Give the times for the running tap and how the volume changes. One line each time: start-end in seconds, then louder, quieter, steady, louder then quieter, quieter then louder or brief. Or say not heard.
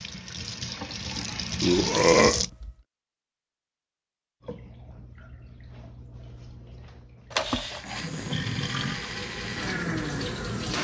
0.0-2.5 brief
4.4-10.7 louder.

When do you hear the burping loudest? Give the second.
2 s.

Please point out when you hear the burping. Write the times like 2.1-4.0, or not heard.
1.1-2.7, 7.3-9.1.